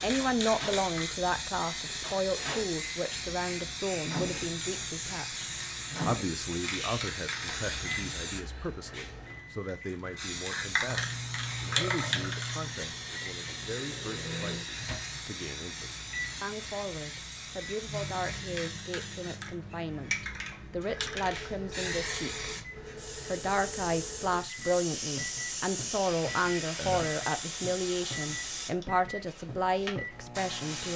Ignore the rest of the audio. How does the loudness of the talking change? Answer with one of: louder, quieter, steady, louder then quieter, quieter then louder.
quieter then louder.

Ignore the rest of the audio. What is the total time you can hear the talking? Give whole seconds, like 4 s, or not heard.
30 s.